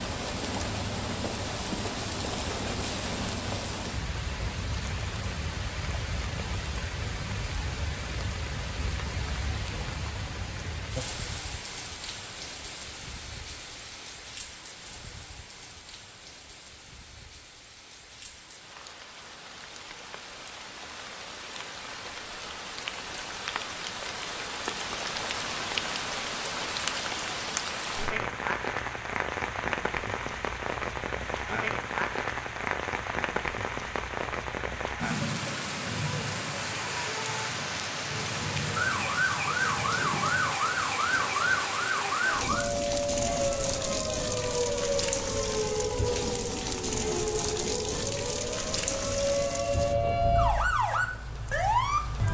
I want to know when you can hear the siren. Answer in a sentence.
The siren can be heard from 38.8 to 52.3 s.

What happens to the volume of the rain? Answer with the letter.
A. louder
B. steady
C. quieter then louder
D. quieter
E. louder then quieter
C.